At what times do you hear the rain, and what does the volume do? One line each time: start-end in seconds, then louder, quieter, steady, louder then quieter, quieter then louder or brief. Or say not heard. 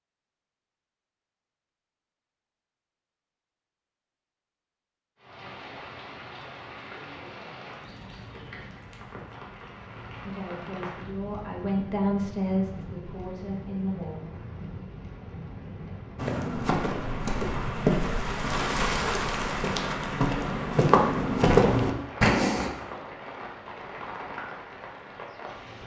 5.2-25.8 louder then quieter.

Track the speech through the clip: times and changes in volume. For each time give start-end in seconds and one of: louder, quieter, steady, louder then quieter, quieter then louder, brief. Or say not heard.
10.2-14.3 louder then quieter.